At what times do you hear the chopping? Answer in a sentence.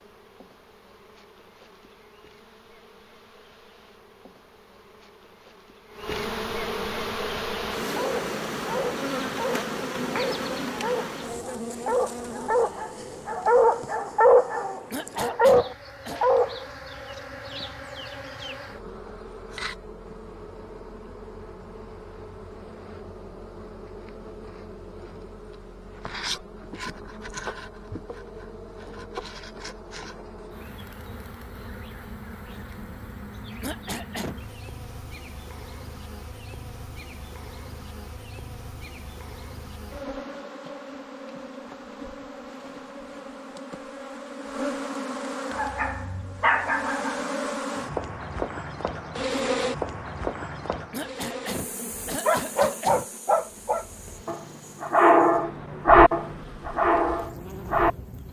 The chopping can't be heard in this clip.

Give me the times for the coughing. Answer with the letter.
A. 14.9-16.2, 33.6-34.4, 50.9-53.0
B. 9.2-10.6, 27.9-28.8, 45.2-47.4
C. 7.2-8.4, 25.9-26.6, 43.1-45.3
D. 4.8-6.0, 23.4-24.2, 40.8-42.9
A.